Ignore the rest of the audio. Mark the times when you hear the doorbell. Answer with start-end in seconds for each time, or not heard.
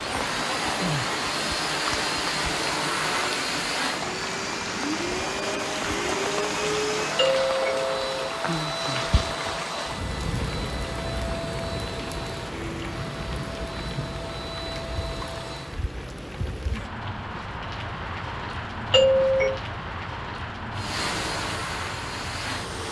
7.2-8.3, 18.9-19.6.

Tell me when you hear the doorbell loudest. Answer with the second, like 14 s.
19 s.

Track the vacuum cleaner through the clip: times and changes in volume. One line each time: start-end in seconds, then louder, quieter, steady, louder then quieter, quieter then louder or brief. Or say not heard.
0.0-15.8 quieter
20.8-22.8 brief.